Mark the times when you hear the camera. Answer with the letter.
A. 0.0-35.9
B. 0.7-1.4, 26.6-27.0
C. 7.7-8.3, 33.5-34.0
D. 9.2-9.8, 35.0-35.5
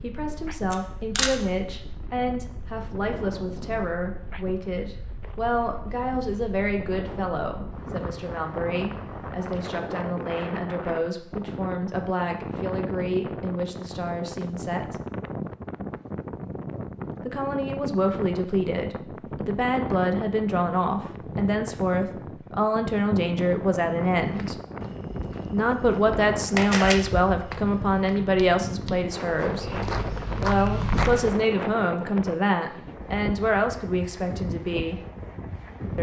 B.